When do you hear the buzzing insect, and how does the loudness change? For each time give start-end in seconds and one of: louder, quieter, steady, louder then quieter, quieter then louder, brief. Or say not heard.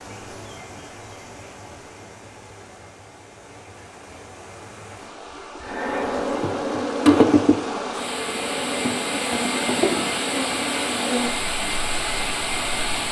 5.7-13.0 quieter.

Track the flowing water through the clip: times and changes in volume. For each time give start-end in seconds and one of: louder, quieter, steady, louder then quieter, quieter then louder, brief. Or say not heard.
0.0-13.0 louder.